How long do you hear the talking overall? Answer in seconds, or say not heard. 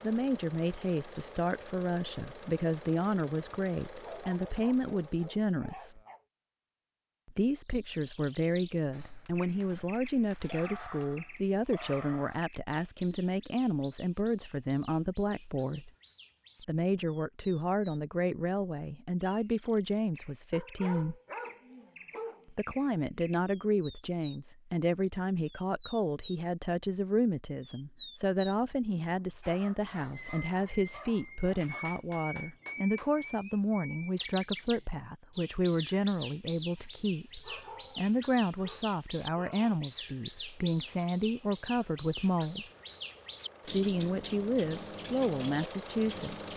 42 s.